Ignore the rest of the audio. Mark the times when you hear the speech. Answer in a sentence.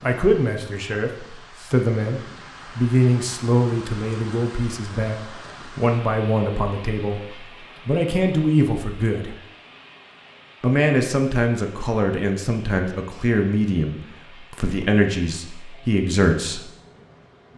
The speech can be heard from 0.0 to 9.3 s and from 10.6 to 16.6 s.